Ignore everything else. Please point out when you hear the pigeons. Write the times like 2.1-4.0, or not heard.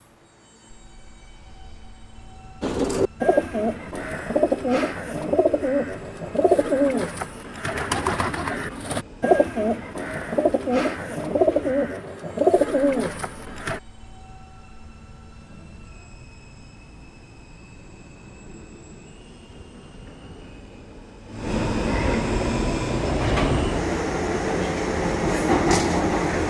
2.6-13.8.